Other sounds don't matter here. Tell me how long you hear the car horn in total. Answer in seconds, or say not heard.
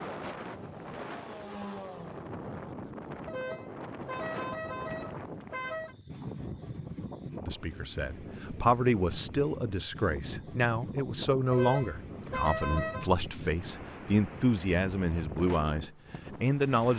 4 s.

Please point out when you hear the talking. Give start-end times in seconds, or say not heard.
7.4-16.9.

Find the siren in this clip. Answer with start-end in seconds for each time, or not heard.
not heard.